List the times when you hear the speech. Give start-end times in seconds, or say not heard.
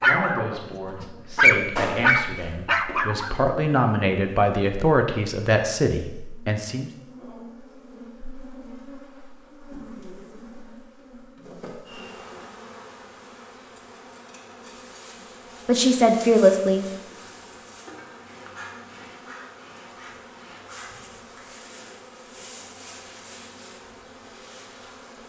0.0-6.9, 15.7-16.9.